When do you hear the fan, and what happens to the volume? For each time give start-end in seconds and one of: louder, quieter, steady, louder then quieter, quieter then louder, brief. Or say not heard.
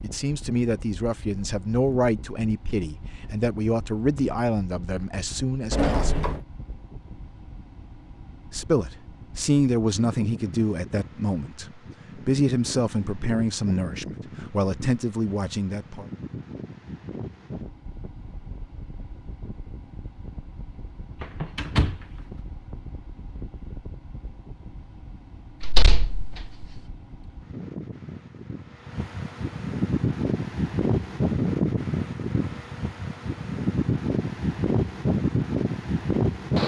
0.0-36.6 louder.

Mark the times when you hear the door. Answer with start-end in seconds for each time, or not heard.
5.7-6.5, 21.2-22.1, 25.6-26.8.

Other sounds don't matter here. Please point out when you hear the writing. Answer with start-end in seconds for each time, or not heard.
not heard.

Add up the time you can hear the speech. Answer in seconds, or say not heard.
14 s.